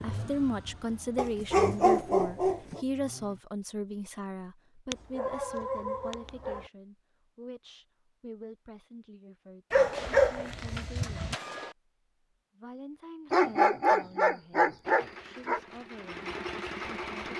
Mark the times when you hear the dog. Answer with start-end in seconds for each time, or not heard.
1.1-2.8, 4.9-6.7, 9.7-11.3, 13.3-15.6.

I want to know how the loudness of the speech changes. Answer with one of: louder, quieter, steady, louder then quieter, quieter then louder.
quieter.